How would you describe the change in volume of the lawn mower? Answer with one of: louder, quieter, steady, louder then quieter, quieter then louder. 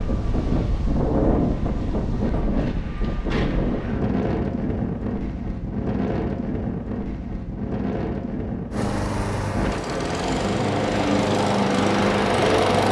louder.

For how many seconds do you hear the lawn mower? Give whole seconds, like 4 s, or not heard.
4 s.